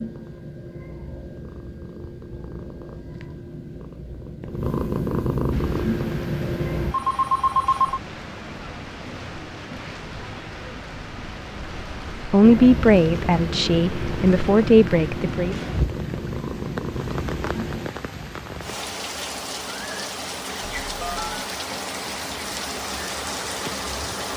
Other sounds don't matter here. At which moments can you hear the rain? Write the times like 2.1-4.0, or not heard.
5.5-24.3.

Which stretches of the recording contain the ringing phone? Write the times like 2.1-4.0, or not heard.
6.9-8.0, 20.9-21.4.